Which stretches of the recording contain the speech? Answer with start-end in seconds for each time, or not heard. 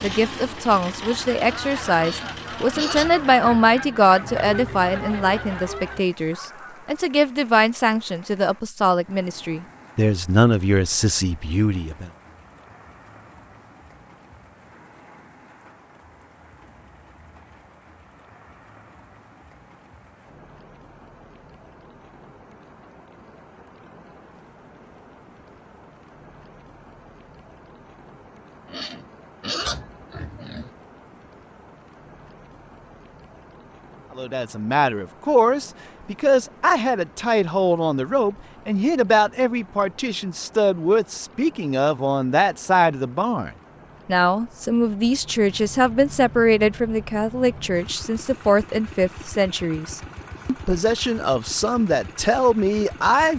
0.0-12.1, 34.1-53.3.